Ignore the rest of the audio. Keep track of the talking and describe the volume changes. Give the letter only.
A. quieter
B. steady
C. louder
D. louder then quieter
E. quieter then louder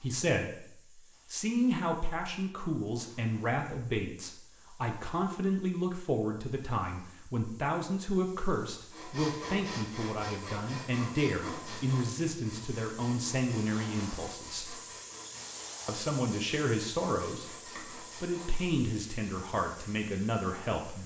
B.